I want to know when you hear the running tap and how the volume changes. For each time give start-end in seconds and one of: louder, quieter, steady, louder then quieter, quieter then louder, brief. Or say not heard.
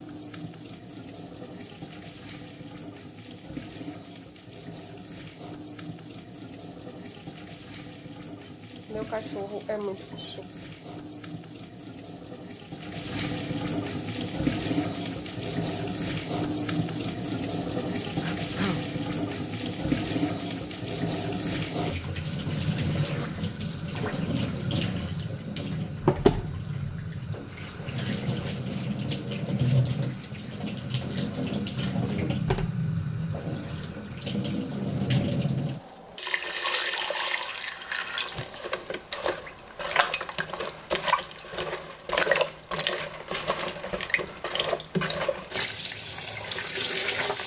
0.0-47.4 louder.